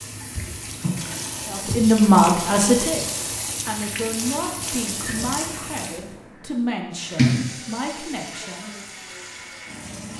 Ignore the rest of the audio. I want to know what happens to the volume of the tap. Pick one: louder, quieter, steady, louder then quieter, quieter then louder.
louder then quieter.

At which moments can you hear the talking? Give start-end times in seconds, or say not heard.
1.5-8.8.